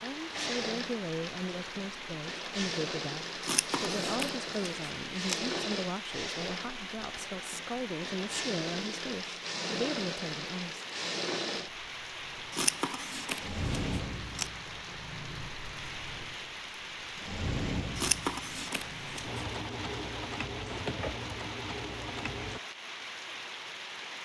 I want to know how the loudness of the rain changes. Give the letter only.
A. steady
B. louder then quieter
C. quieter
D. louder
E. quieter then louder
A.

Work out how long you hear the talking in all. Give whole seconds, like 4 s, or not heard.
11 s.